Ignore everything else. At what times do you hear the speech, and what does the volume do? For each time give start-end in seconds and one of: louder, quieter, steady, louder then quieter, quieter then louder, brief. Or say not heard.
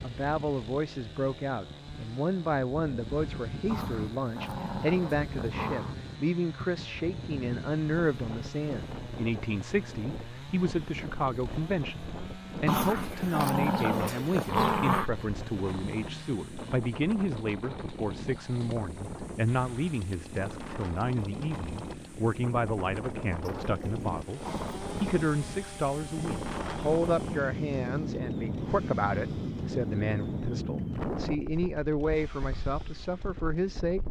0.0-34.0 steady.